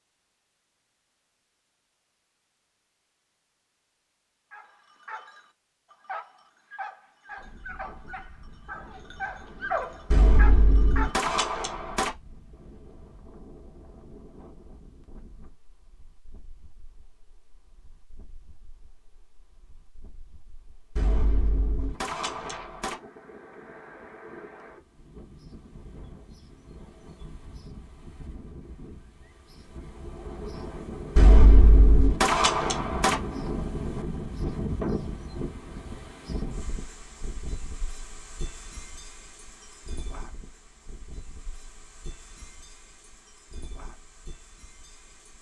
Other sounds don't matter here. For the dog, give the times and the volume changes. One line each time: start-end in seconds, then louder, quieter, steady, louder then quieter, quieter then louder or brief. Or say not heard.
4.5-11.3 louder.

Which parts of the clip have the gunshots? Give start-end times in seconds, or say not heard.
10.1-12.1, 20.9-22.9, 31.1-33.1.